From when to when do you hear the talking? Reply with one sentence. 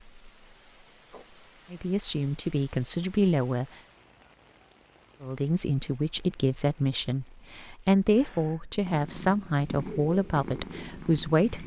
The talking can be heard from 1.7 to 3.6 s and from 5.2 to 11.6 s.